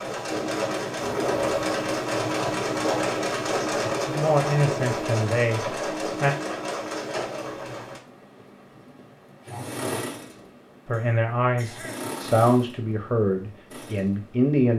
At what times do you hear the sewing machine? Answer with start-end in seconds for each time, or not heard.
0.0-14.6.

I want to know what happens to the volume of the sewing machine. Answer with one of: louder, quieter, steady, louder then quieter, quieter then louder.
quieter.